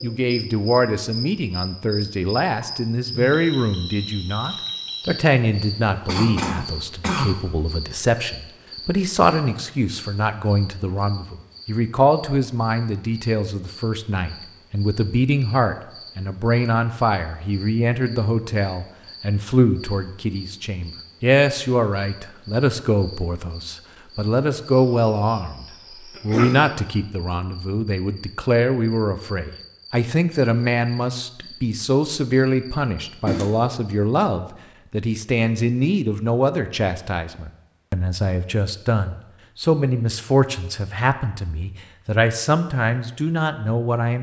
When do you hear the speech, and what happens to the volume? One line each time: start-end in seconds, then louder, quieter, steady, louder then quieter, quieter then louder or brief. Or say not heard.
0.0-44.1 steady.